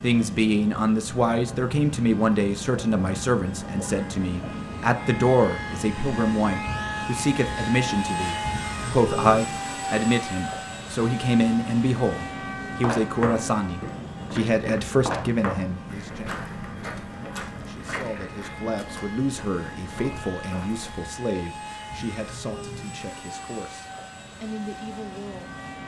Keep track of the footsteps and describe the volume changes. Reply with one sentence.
The loudness of the footsteps goes down.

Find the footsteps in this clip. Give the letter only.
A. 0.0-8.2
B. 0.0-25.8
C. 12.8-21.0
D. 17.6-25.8
C.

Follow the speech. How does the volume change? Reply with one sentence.
The volume of the speech goes down.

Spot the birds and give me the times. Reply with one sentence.
The birds can't be heard in this clip.